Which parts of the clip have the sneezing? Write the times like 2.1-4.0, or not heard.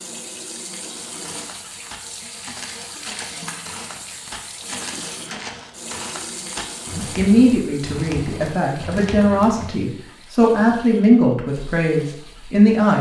not heard.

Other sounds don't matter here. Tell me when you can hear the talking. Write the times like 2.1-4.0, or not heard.
6.9-12.9.